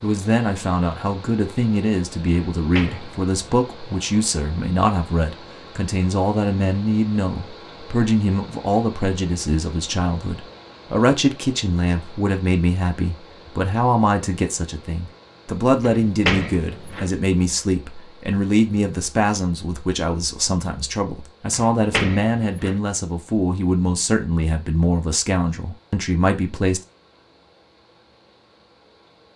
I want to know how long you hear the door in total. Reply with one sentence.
The door can be heard for 3 seconds in total.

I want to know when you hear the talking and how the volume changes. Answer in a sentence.
The talking can be heard from 0.0 to 26.8 s, at a steady volume.